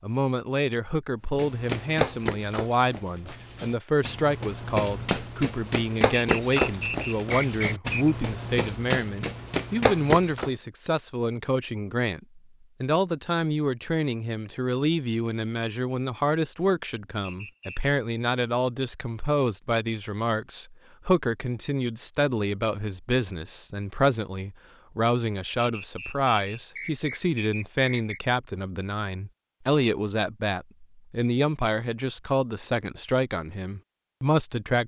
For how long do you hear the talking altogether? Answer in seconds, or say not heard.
35 s.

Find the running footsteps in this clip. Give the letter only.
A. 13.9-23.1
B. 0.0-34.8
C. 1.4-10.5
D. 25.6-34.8
C.